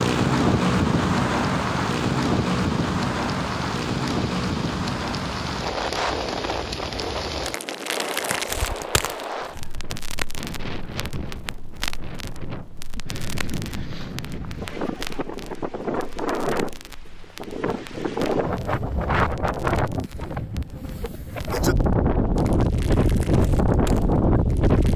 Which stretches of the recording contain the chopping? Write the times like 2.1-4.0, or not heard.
not heard.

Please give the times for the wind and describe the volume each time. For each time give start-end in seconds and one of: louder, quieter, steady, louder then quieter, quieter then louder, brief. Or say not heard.
0.0-24.9 quieter then louder.